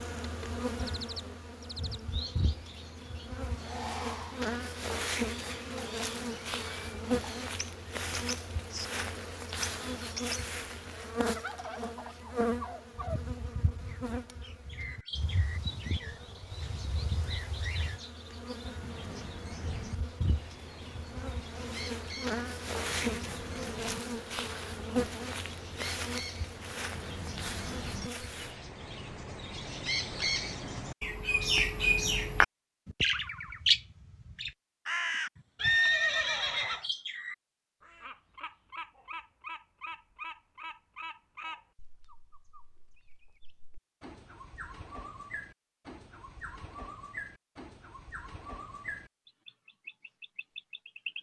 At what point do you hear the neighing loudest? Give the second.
36 s.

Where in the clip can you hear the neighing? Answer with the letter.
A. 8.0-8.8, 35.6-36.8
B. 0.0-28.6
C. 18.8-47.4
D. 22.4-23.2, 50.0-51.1
A.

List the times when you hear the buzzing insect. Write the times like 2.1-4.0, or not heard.
0.0-28.6.